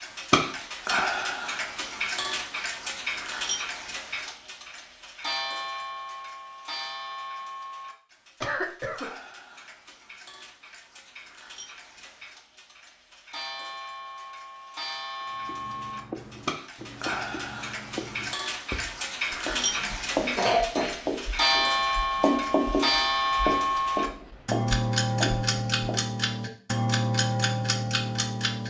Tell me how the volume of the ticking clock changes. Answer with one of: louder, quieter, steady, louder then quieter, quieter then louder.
quieter then louder.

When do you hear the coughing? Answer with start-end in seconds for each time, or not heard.
8.4-9.1, 20.4-20.9.